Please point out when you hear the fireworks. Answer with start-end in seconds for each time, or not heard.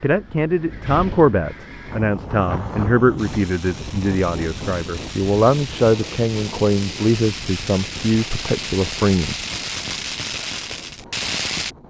3.1-11.8.